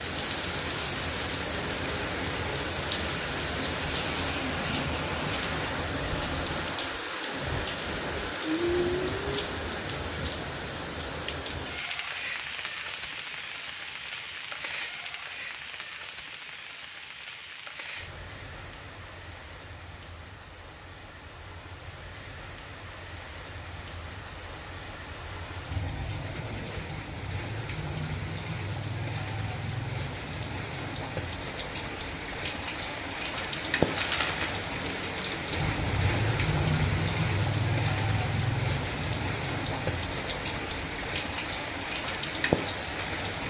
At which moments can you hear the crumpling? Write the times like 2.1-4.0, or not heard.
33.8-34.5.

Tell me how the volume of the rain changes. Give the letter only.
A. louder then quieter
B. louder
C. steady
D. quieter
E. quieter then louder
E.